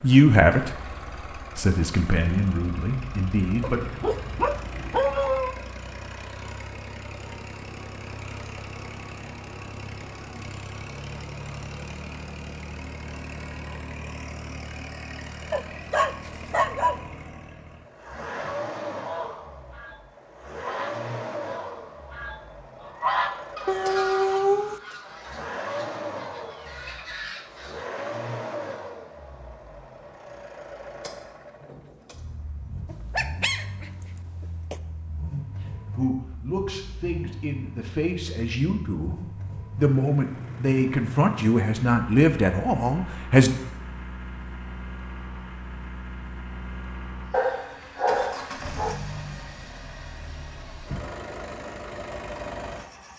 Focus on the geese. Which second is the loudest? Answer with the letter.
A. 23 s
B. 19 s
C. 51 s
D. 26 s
A.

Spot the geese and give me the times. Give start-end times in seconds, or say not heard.
18.3-27.9.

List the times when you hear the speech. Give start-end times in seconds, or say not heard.
0.0-0.8, 1.4-3.9, 35.3-43.5.